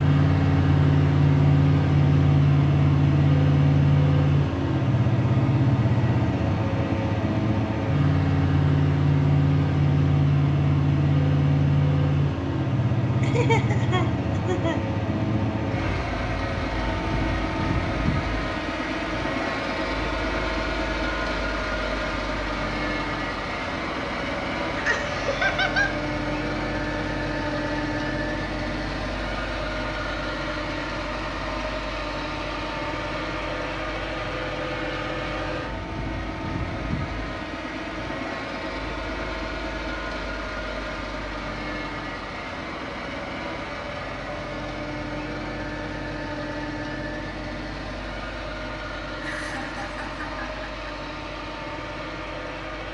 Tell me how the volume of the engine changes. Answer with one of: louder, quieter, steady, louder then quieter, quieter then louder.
quieter.